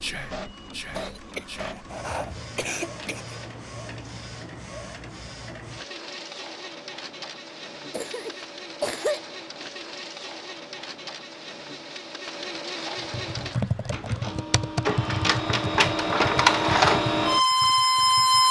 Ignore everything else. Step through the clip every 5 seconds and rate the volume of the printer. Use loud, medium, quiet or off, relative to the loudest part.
quiet, quiet, quiet, loud.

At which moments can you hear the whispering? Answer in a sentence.
The whispering can be heard from 0.0 to 1.8 s.